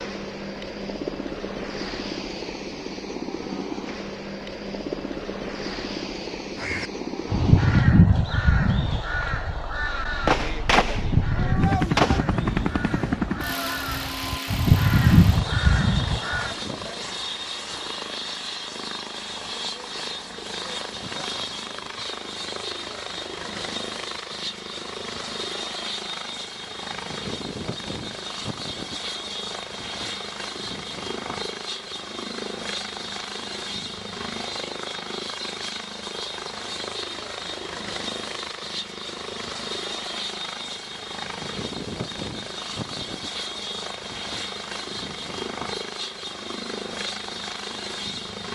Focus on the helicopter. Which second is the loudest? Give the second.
12 s.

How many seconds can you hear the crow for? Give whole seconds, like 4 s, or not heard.
10 s.